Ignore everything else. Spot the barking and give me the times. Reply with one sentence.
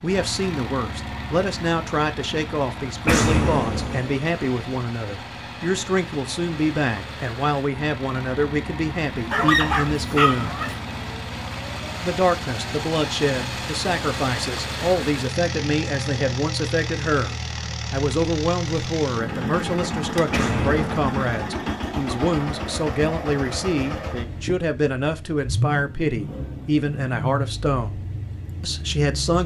You can hear the barking from 9.3 to 10.8 s.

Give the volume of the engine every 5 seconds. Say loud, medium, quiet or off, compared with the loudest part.
medium, medium, loud, loud, loud, loud.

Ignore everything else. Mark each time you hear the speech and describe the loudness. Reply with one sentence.
The speech can be heard from 0.0 to 10.6 s, at a steady volume; from 12.0 to 28.0 s, at a steady volume; and briefly from 28.6 to 29.4 s.